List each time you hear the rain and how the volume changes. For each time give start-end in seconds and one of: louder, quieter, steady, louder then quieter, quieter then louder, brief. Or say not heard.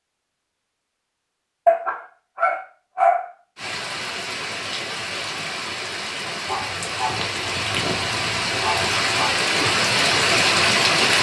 3.5-11.1 louder.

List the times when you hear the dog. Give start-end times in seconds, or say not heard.
1.6-3.2, 6.5-9.3.